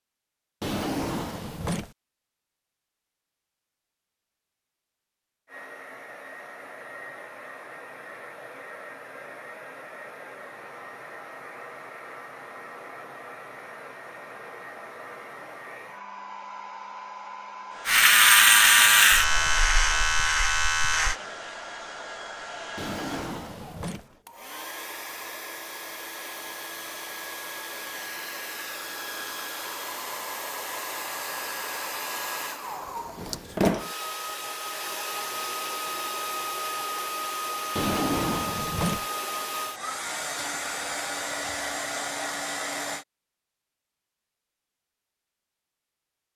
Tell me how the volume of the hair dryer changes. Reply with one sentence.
The loudness of the hair dryer goes up.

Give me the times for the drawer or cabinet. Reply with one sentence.
The drawer or cabinet can be heard from 0.6 to 1.9 s, from 22.8 to 24.1 s and from 37.8 to 39.0 s.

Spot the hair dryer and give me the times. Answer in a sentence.
The hair dryer can be heard from 5.5 to 43.0 s.